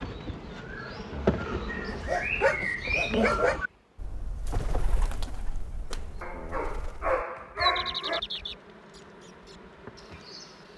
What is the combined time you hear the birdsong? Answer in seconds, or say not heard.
11 s.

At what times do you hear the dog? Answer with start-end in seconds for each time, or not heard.
1.9-3.6, 6.2-8.2.